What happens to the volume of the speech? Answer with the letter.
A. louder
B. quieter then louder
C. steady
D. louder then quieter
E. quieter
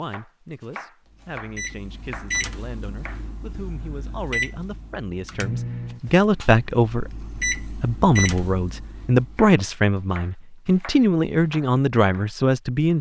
A.